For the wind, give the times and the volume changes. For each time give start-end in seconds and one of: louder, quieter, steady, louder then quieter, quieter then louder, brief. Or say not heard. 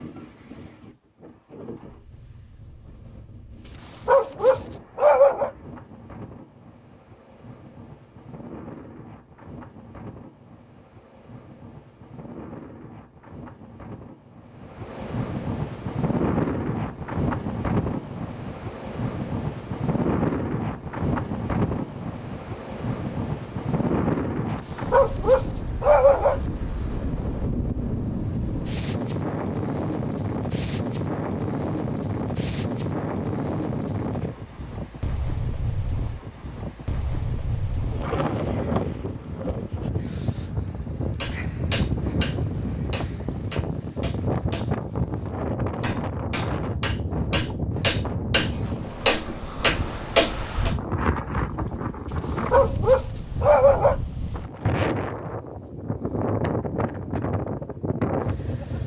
0.0-58.8 louder.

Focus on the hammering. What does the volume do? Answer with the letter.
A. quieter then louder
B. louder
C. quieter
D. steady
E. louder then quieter
A.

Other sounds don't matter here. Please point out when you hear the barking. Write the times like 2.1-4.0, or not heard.
4.0-5.5, 24.9-26.4, 52.5-54.0.